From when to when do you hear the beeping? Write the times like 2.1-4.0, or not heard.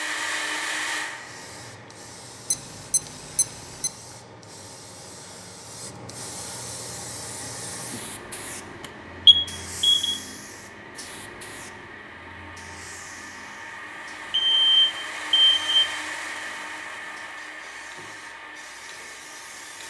2.5-3.9, 9.2-10.2, 14.3-15.8.